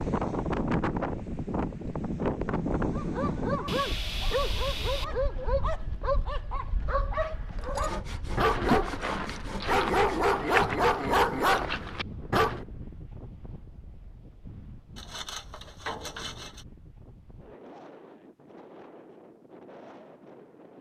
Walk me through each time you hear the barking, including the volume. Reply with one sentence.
The barking can be heard from 2.9 to 12.6 s, getting louder.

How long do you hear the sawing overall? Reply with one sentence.
The sawing can be heard for 6 seconds in total.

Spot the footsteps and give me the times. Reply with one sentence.
You can't hear the footsteps here.